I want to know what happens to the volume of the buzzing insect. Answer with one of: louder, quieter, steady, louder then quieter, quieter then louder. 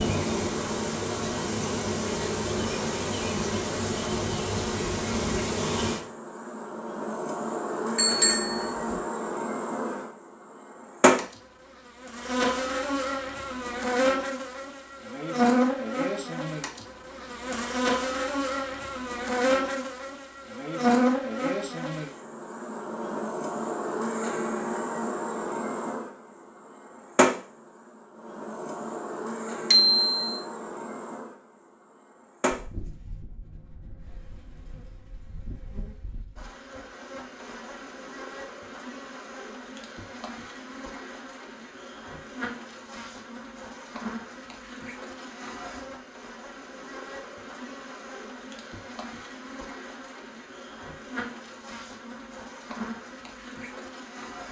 quieter.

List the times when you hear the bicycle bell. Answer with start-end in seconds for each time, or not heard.
8.0-9.0, 29.7-30.2.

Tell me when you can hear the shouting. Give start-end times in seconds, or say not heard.
not heard.